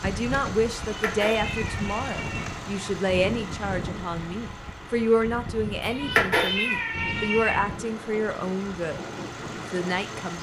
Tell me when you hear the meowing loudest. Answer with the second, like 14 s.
6 s.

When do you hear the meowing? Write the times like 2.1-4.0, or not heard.
0.8-2.5, 5.8-7.6.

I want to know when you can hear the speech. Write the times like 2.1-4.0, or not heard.
0.0-10.3.